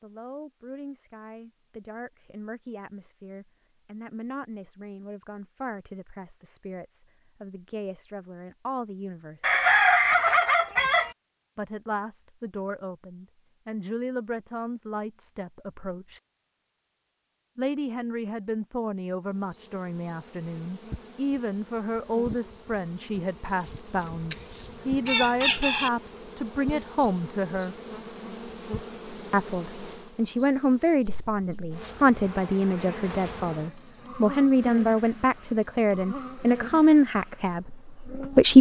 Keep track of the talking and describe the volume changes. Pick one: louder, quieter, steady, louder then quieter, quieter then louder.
louder.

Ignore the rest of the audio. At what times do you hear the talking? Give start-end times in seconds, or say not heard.
0.0-9.6, 11.6-16.2, 17.6-27.8, 29.3-38.5.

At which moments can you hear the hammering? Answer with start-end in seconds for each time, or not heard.
not heard.